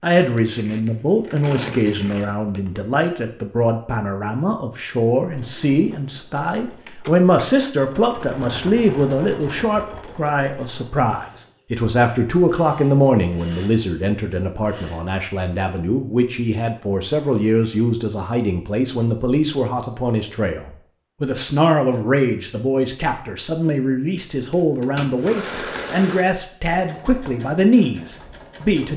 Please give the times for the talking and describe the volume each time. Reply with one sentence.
You can hear the talking from 0.0 to 28.9 s, at a steady volume.